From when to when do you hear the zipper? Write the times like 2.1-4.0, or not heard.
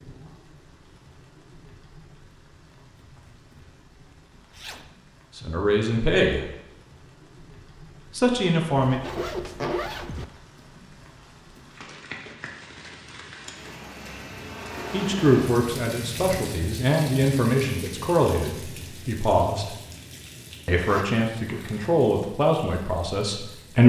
4.5-5.0, 8.8-10.2, 20.7-21.9.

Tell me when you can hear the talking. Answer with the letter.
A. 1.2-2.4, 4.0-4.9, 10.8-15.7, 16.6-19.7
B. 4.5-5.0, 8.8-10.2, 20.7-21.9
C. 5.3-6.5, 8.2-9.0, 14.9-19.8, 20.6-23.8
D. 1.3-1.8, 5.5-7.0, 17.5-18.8
C.